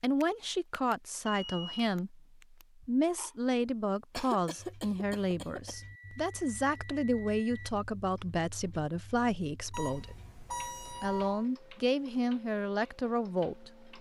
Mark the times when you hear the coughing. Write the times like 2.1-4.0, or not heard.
4.1-5.8.